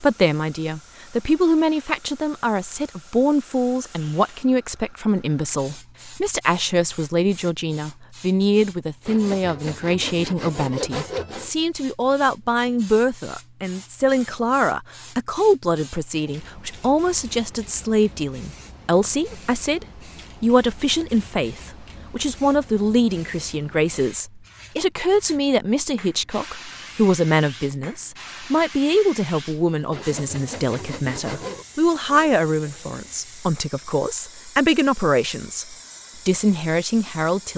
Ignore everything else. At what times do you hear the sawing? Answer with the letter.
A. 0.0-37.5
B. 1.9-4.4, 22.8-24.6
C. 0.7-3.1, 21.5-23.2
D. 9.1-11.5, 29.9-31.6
D.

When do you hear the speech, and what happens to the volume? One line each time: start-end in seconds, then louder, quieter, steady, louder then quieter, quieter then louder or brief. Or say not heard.
0.0-37.5 steady.